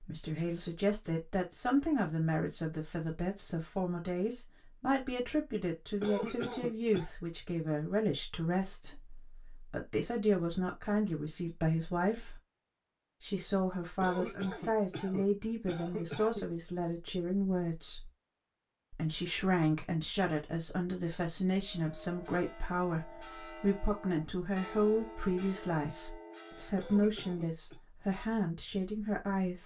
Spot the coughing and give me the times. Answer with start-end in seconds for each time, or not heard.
6.0-7.1, 14.0-16.4, 26.8-27.8.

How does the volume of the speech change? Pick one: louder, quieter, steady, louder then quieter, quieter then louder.
steady.